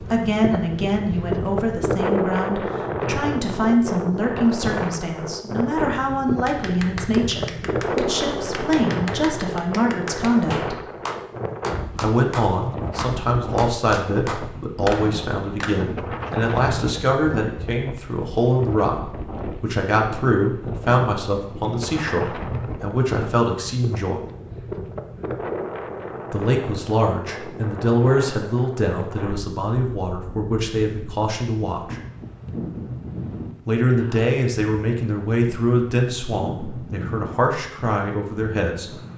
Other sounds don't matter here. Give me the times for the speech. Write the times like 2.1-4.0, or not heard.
0.0-10.8, 11.9-24.2, 26.3-32.0, 33.6-38.9.